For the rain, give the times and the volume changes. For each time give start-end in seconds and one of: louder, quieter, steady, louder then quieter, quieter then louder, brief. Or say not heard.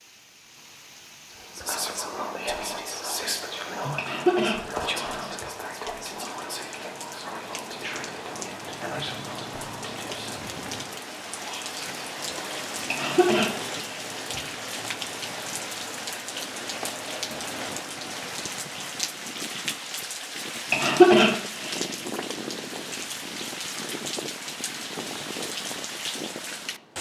0.0-26.9 louder.